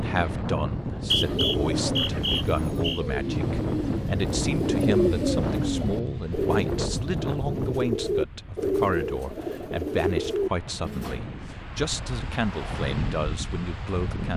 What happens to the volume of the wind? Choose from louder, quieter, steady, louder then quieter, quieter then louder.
quieter then louder.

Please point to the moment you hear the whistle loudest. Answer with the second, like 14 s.
1 s.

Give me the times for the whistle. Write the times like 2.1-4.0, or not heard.
0.7-3.0.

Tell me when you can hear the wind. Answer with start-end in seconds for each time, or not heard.
0.0-14.3.